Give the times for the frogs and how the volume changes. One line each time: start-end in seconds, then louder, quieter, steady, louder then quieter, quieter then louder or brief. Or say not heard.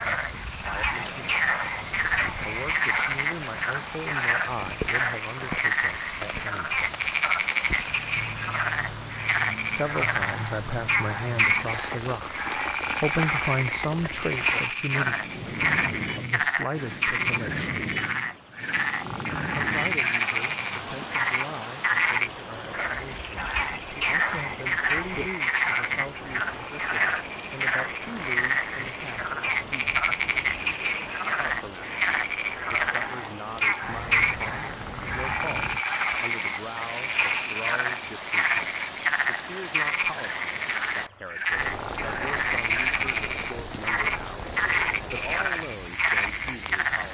0.0-47.0 steady.